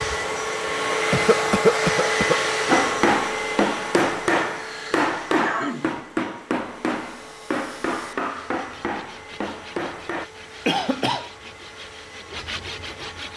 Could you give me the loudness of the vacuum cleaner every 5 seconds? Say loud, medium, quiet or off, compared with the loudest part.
loud, quiet, quiet.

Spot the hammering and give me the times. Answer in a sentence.
The hammering can be heard from 2.6 to 10.2 s.